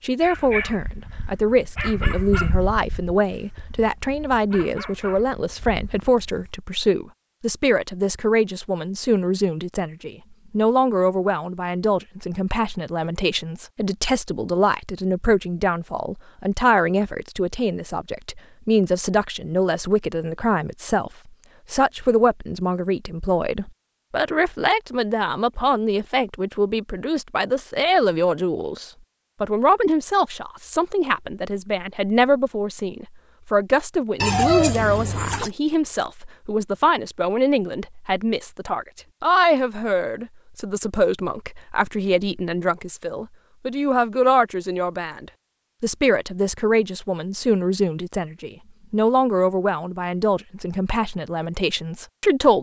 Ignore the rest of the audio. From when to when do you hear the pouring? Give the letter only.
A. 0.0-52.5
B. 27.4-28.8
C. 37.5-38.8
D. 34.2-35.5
D.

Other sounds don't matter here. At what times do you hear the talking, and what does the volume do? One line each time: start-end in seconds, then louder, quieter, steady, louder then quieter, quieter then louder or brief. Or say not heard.
0.0-52.5 steady.